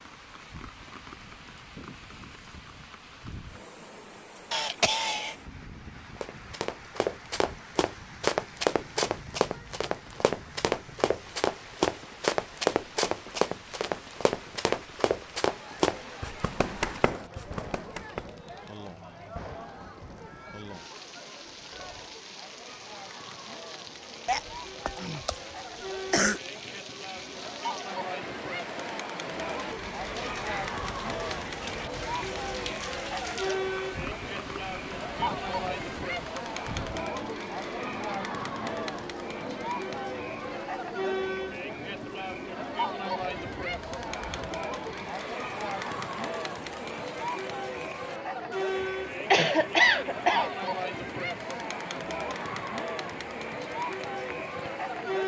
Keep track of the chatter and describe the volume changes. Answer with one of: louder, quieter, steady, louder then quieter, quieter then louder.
louder.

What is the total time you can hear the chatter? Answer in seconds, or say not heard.
40 s.